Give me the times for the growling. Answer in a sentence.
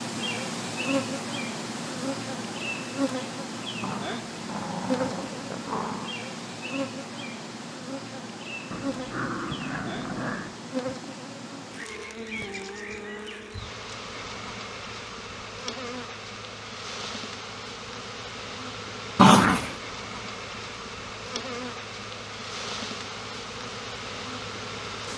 The growling can be heard from 3.8 to 6.2 s, from 8.7 to 10.6 s and from 19.1 to 19.8 s.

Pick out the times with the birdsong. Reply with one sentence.
You can't hear the birdsong here.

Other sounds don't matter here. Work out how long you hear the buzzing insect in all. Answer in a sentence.
You can hear the buzzing insect for 25 seconds altogether.